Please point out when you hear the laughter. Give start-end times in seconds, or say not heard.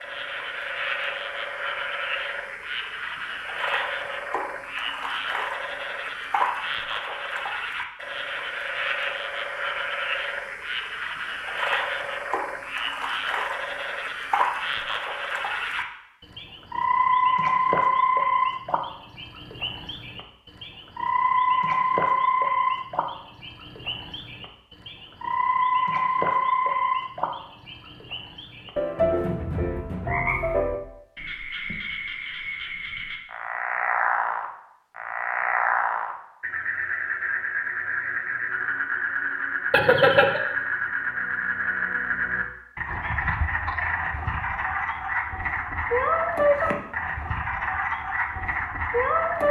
39.7-40.4.